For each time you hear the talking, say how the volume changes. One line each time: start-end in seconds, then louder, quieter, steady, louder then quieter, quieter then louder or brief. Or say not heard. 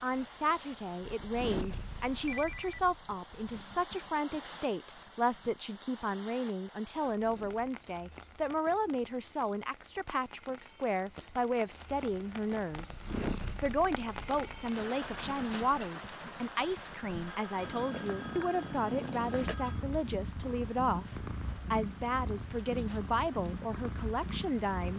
0.0-12.8 steady
13.6-24.9 steady.